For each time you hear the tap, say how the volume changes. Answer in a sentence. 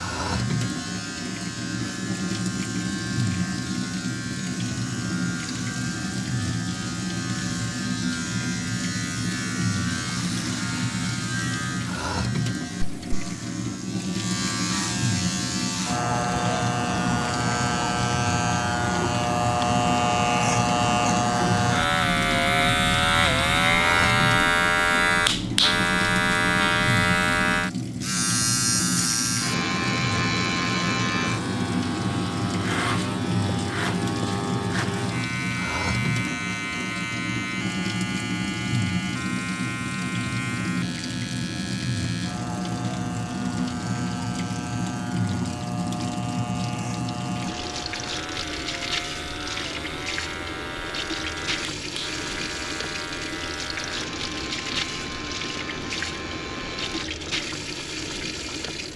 The tap can be heard from 0.0 to 58.9 s, at a steady volume.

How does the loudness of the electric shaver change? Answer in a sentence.
The loudness of the electric shaver goes up, then down.